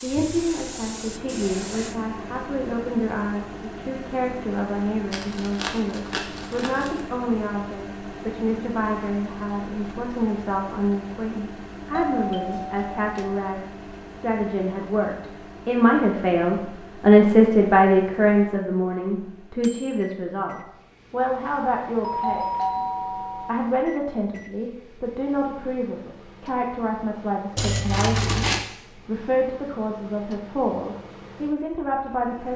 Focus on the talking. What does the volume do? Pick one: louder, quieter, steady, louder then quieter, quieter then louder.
louder then quieter.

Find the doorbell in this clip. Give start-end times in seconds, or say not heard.
11.9-13.4, 22.0-23.5.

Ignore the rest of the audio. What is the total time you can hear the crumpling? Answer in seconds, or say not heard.
3 s.